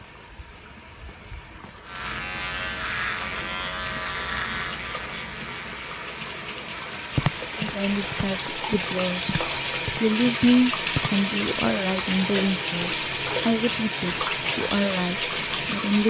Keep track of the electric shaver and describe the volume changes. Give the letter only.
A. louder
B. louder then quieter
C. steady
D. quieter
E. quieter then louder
D.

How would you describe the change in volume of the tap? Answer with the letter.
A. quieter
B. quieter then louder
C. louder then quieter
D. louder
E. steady
D.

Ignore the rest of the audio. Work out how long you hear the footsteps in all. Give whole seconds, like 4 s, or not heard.
6 s.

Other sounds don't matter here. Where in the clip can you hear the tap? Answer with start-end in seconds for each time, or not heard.
0.0-16.0.